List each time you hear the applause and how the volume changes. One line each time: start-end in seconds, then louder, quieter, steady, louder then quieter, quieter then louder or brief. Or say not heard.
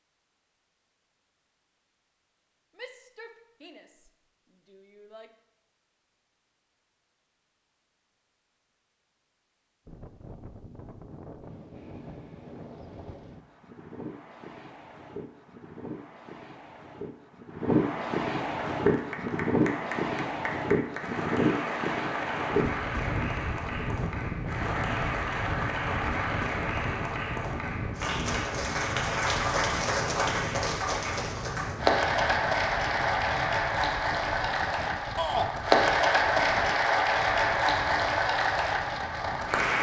18.7-39.7 louder.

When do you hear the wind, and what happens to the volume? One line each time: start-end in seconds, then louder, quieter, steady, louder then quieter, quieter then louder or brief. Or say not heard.
9.8-39.7 louder then quieter.